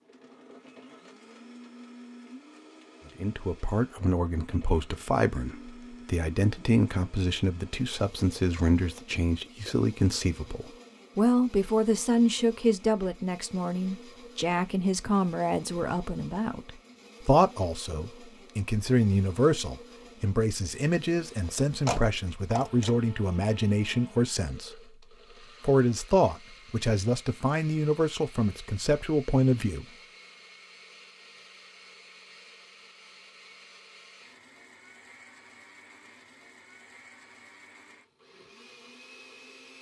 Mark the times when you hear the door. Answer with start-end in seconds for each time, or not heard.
21.9-22.9.